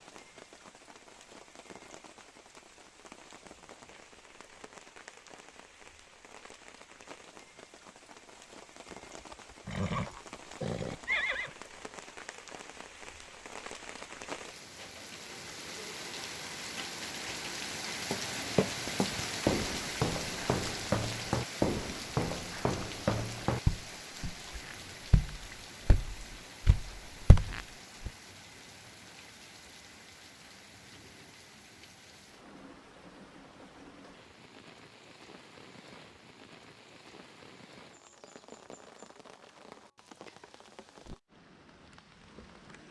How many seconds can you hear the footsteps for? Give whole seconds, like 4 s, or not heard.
10 s.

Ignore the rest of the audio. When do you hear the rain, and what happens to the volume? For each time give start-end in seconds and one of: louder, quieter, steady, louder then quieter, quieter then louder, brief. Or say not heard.
0.0-42.8 louder then quieter.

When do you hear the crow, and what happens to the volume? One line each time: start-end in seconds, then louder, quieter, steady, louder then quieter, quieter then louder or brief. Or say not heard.
not heard.